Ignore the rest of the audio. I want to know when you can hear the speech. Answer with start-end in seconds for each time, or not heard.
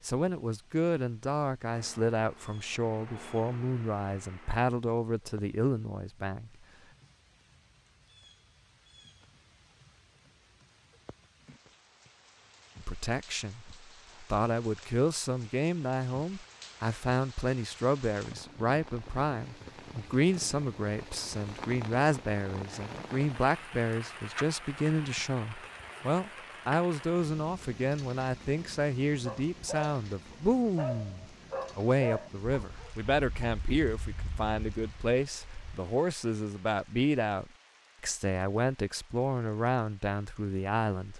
0.0-6.5, 12.8-41.1.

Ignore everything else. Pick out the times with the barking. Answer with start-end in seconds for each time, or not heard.
29.2-35.8.